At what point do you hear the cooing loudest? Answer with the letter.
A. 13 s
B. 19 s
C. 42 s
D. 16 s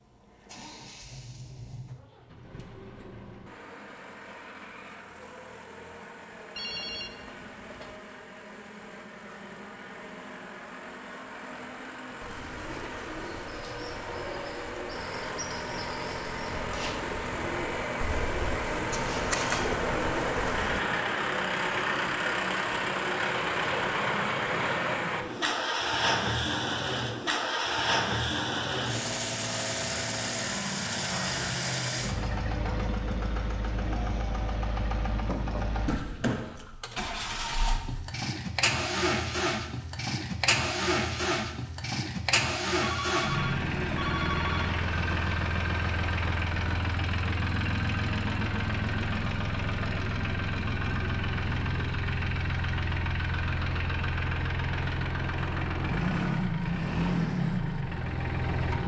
B.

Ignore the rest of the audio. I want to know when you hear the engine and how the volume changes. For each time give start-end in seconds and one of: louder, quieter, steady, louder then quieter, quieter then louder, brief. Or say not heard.
0.0-58.8 louder.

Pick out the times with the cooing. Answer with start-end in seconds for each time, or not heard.
12.2-20.8.